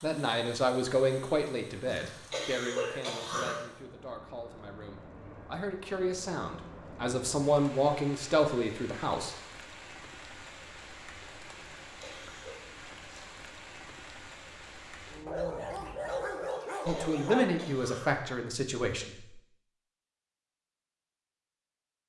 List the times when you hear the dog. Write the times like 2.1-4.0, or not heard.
15.2-17.8.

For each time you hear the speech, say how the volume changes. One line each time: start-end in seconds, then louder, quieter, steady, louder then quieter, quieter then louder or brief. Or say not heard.
0.0-9.3 quieter then louder
16.9-19.4 brief.